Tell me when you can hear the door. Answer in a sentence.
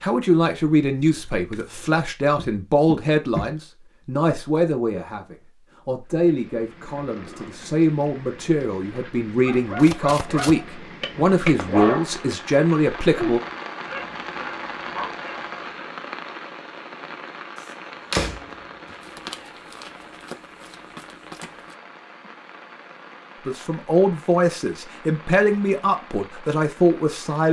You can hear the door from 2.4 to 3.5 s and from 18.1 to 19.4 s.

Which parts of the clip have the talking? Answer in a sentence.
The talking can be heard from 0.0 to 13.4 s and from 23.4 to 27.4 s.